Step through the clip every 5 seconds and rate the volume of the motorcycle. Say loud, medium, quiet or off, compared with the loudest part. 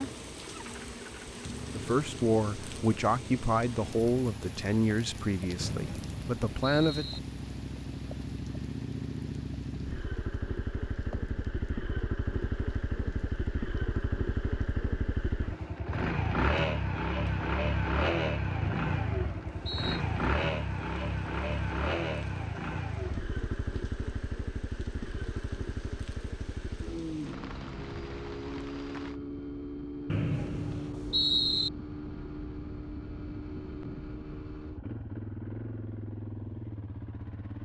quiet, medium, medium, loud, loud, medium, medium, medium.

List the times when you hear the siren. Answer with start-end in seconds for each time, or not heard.
not heard.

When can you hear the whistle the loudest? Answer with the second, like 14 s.
31 s.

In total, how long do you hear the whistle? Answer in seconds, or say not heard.
5 s.